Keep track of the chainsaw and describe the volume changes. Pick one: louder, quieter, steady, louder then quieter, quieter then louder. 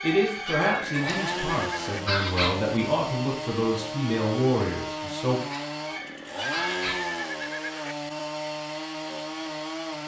steady.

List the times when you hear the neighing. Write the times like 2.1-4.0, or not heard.
0.2-2.0, 6.0-8.0.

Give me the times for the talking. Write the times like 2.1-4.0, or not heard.
0.0-5.4.